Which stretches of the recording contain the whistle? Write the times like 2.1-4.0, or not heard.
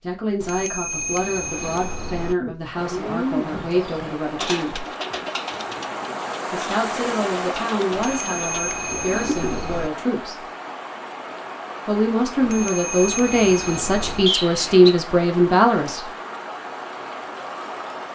14.2-14.9.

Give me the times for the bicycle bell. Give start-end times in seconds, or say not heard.
0.4-2.4, 7.9-9.9, 12.4-14.3.